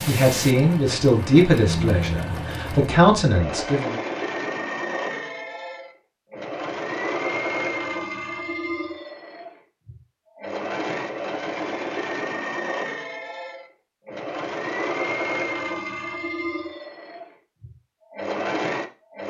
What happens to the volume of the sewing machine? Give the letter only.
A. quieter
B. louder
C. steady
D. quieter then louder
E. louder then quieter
C.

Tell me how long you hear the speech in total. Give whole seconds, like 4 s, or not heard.
4 s.